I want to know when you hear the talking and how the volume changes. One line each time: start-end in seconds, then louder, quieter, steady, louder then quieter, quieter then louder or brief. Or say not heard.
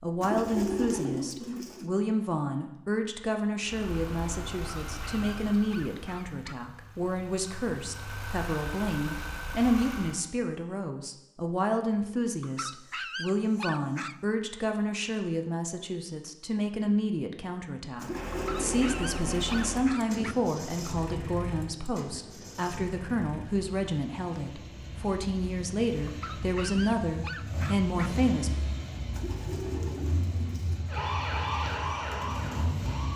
0.0-28.5 steady.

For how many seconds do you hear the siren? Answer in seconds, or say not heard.
2 s.